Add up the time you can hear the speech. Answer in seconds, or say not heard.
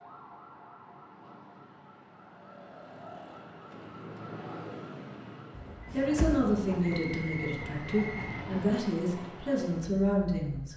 5 s.